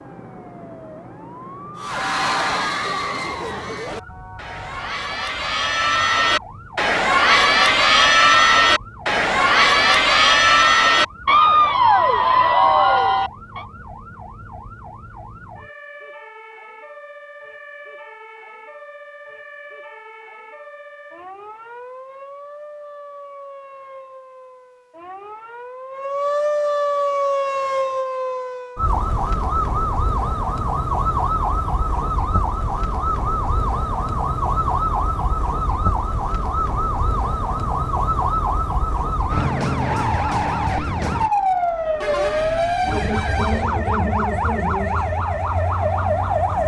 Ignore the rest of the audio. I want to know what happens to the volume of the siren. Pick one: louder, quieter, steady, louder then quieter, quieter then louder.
louder.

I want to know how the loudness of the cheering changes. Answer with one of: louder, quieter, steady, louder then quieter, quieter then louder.
louder.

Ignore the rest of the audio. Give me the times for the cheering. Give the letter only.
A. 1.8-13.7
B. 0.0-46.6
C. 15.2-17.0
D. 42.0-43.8
A.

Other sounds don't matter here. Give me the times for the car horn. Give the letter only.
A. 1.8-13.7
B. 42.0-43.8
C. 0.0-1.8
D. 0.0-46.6
B.